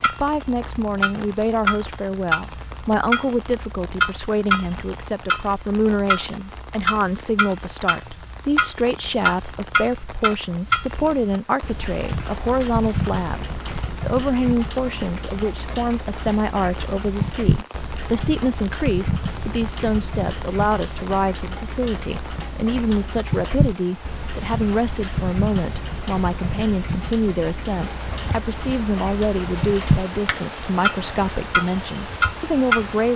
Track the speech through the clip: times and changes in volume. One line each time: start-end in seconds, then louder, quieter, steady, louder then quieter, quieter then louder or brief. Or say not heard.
0.0-33.1 steady.